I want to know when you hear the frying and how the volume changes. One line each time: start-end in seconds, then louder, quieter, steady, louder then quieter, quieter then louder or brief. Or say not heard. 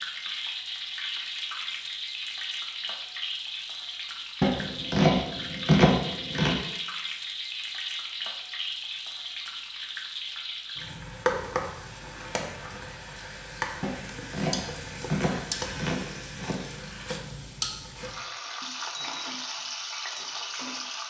0.0-21.0 steady.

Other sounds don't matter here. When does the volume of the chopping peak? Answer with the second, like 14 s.
6 s.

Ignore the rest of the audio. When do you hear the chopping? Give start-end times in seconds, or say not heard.
4.4-6.5, 13.8-16.6.